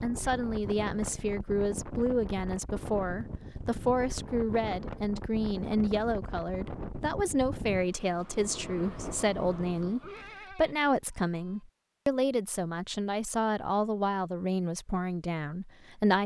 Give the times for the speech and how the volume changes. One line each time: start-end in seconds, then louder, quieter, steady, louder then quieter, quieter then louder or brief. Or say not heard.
0.0-16.2 steady.